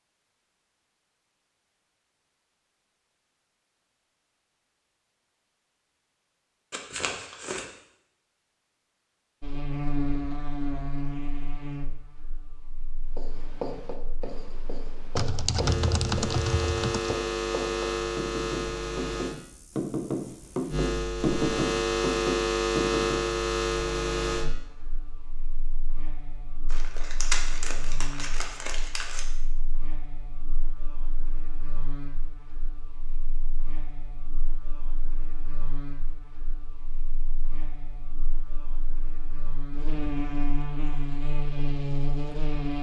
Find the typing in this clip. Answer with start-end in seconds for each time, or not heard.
15.2-17.1.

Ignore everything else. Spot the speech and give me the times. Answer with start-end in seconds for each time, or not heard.
not heard.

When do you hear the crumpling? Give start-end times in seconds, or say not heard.
6.7-7.7, 26.7-29.2.